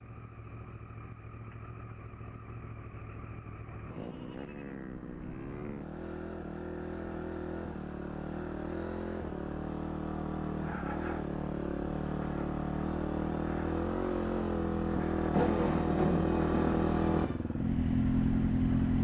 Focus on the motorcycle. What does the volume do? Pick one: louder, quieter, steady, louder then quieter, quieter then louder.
louder.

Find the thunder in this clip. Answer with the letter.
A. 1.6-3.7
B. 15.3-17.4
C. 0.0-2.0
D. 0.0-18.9
B.